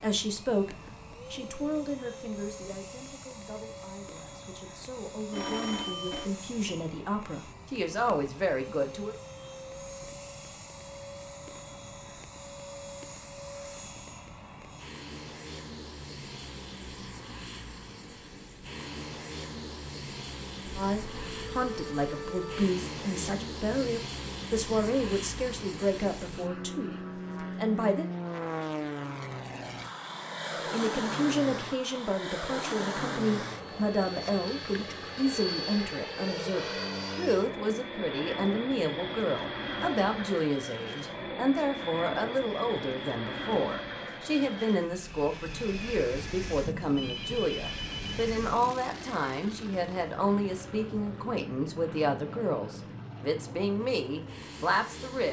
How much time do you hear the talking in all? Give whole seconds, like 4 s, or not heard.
41 s.